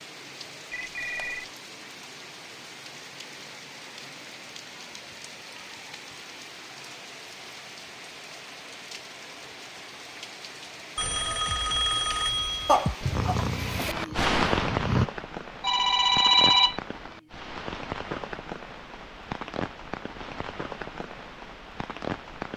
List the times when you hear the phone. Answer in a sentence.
The phone can be heard from 0.7 to 1.4 s, from 10.9 to 12.9 s and from 15.6 to 16.8 s.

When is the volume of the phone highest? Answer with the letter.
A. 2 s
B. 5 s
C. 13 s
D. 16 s
D.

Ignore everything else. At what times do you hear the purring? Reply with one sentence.
You can hear the purring from 13.0 to 15.1 s.